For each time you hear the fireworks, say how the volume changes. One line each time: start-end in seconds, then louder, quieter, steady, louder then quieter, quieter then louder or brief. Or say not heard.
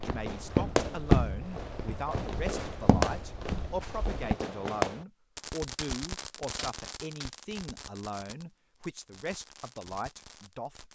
0.0-10.8 quieter.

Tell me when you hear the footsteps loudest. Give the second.
1 s.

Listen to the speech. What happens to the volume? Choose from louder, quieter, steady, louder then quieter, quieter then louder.
steady.